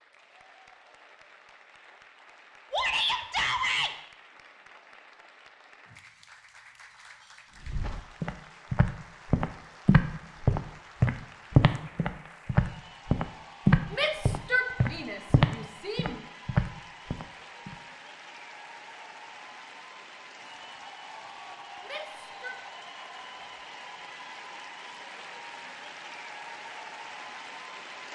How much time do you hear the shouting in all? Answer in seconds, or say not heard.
4 s.